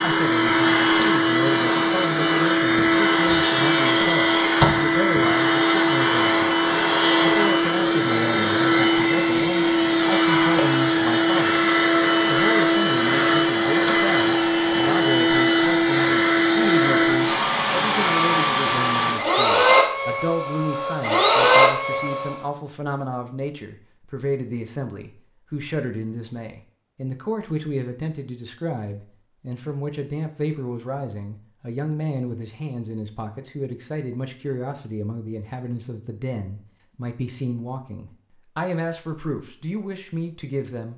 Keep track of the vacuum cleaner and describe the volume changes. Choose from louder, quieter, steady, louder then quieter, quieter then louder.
steady.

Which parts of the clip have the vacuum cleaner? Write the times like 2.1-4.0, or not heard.
0.0-22.4.